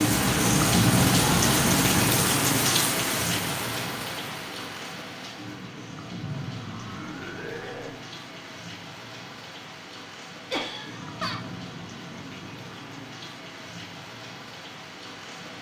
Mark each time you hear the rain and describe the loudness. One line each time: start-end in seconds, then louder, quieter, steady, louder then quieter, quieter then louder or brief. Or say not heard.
0.0-15.5 quieter.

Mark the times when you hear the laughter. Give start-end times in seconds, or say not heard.
0.1-2.2, 6.2-8.0, 10.5-11.4.